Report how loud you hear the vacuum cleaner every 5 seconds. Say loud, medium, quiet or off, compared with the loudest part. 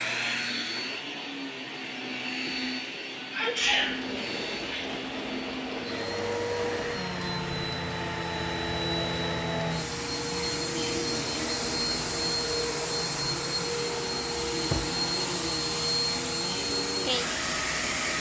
medium, loud, loud, loud.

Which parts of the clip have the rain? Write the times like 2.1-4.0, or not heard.
3.5-18.1.